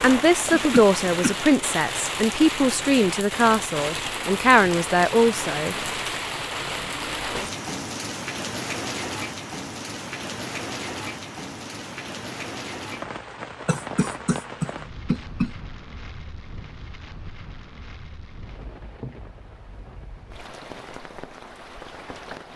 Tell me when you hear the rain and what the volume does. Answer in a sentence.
You can hear the rain from 0.0 to 22.5 s, getting quieter.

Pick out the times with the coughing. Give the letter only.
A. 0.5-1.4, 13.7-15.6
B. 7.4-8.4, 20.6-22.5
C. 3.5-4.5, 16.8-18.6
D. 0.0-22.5
A.